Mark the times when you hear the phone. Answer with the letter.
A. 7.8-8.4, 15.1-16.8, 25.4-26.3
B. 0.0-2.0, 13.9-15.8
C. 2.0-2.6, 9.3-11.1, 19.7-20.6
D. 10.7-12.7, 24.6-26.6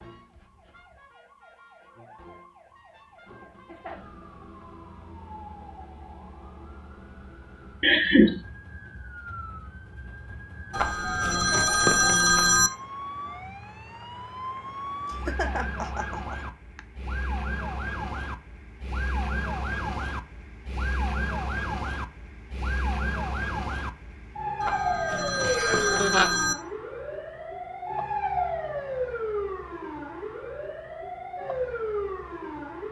D.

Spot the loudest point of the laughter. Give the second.
8 s.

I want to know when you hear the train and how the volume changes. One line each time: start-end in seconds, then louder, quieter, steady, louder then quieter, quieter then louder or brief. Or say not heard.
not heard.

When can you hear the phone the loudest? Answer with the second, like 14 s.
12 s.